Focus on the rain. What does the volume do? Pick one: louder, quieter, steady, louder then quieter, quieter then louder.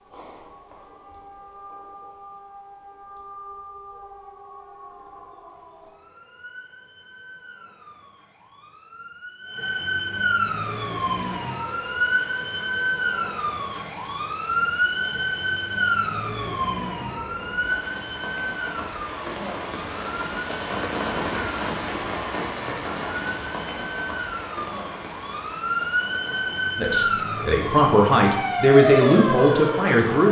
louder then quieter.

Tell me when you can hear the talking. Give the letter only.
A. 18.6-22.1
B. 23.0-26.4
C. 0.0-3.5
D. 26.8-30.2
D.